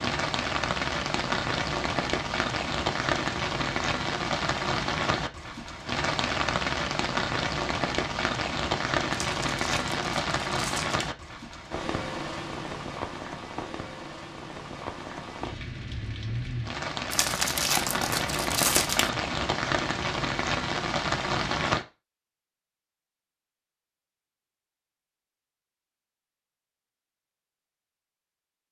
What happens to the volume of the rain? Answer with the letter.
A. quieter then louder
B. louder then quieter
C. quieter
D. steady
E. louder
A.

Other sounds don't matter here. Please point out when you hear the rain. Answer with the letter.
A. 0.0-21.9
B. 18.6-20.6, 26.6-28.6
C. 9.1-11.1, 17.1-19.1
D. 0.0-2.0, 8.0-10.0
A.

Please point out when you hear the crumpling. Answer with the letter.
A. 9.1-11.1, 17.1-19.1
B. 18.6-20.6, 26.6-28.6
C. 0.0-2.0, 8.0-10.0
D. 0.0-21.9
A.